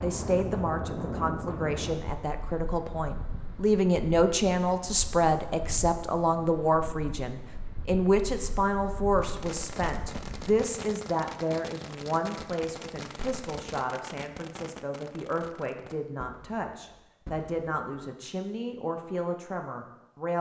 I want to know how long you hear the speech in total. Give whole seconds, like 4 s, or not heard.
20 s.